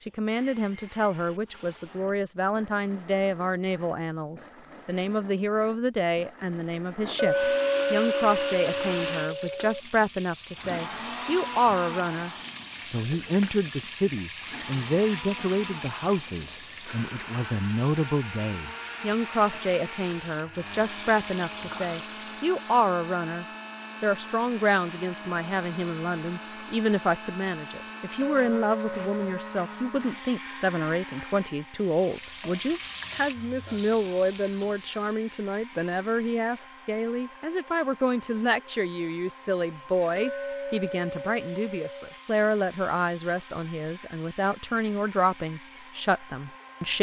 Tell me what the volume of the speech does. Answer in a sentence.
The loudness of the speech stays about the same.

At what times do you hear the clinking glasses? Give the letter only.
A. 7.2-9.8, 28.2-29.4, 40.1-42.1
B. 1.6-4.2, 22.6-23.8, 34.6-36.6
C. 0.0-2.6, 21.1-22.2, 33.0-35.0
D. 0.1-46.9
A.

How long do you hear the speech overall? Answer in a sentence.
You can hear the speech for 47 seconds altogether.